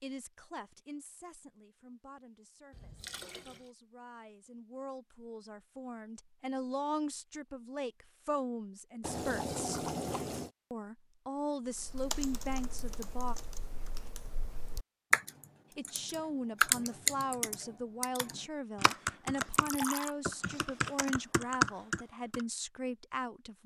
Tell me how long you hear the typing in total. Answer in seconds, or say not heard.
11 s.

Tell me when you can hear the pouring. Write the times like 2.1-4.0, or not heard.
2.7-3.7, 9.0-10.5, 19.6-20.1.